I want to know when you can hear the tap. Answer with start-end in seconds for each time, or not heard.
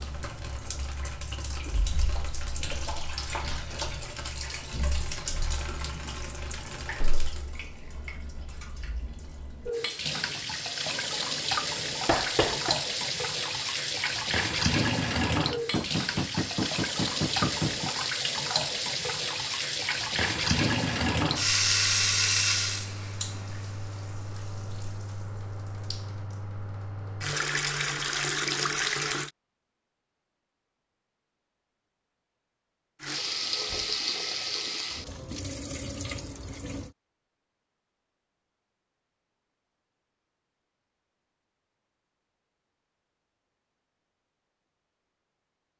0.0-29.3, 33.0-36.9.